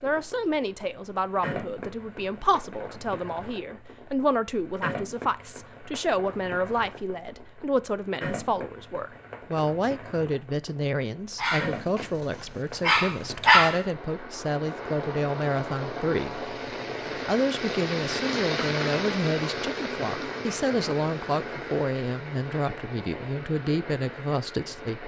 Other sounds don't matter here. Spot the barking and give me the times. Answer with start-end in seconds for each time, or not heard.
11.4-12.1, 12.8-13.8.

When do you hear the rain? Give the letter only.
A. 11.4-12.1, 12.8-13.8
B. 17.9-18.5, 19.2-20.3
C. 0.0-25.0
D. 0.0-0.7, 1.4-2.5
C.